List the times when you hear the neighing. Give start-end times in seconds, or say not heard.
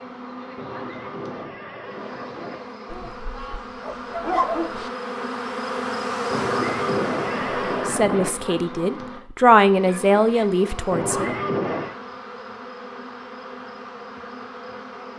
0.6-2.6, 6.3-8.3, 10.9-11.9.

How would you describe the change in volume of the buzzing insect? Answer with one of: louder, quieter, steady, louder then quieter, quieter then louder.
louder then quieter.